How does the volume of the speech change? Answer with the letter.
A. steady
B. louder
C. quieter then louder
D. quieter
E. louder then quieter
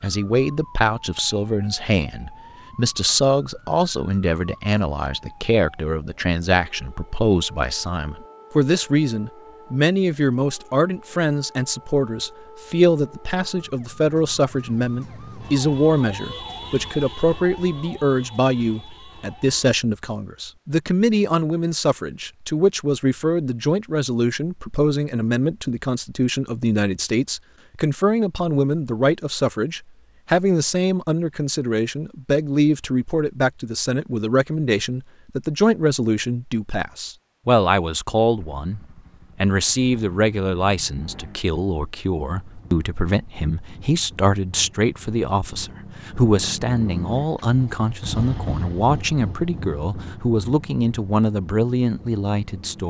A.